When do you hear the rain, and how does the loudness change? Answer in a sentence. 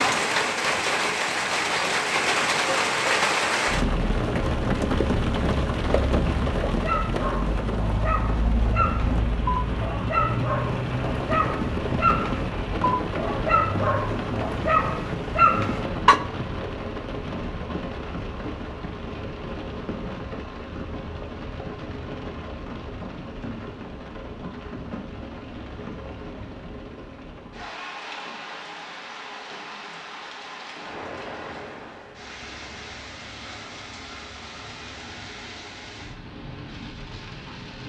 You can hear the rain from 0.0 to 37.8 s, getting quieter.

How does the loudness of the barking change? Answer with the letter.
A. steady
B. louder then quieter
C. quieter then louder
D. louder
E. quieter
D.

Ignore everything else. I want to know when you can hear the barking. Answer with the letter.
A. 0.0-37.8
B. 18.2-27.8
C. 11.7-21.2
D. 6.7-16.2
D.